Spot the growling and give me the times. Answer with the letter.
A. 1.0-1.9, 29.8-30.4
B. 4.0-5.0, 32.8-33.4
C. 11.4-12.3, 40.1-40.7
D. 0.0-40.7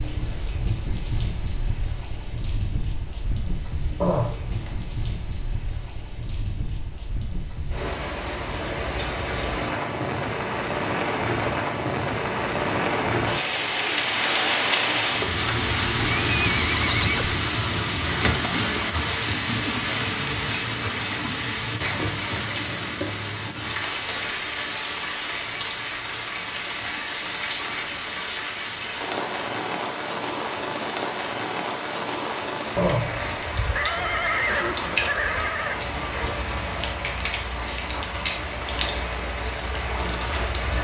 B.